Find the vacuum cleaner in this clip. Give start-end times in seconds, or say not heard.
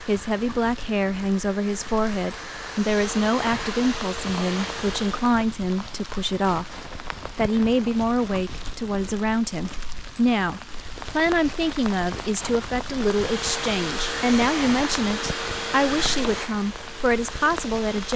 0.0-5.4, 12.9-18.1.